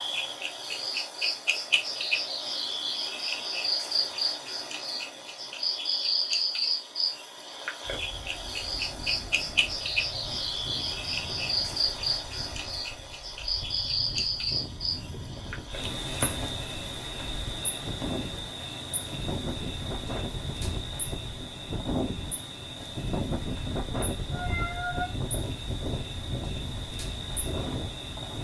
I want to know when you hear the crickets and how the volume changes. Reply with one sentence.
You can hear the crickets from 0.0 to 28.3 s, getting quieter.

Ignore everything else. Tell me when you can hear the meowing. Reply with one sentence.
The meowing can be heard from 24.3 to 25.1 s.